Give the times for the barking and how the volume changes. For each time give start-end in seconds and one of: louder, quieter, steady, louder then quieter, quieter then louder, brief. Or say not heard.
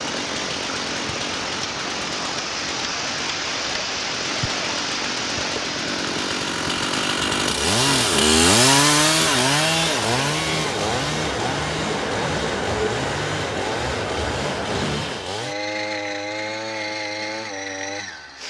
not heard.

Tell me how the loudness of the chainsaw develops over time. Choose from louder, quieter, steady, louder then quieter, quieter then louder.
louder then quieter.